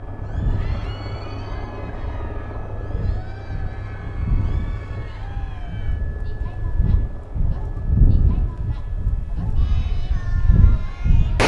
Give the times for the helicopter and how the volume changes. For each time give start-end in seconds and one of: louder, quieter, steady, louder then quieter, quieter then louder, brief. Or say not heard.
0.0-11.2 quieter.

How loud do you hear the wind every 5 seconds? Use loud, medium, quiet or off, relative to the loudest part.
medium, medium, loud.